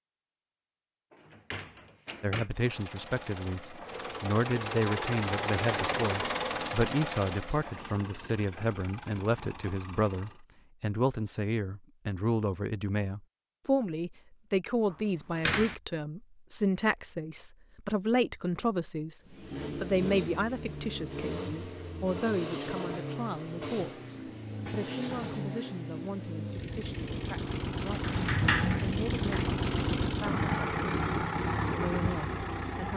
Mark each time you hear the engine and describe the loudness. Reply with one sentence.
The engine can be heard from 2.5 to 10.4 s, getting louder then quieter; and from 19.2 to 32.9 s, getting louder.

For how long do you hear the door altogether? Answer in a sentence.
The door can be heard for 4 seconds in total.